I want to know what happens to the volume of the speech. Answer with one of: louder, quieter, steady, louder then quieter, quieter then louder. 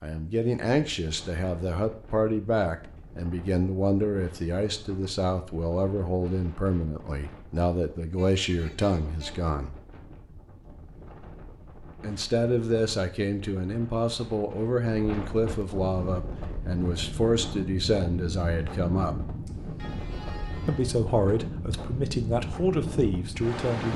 steady.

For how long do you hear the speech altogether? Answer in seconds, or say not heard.
20 s.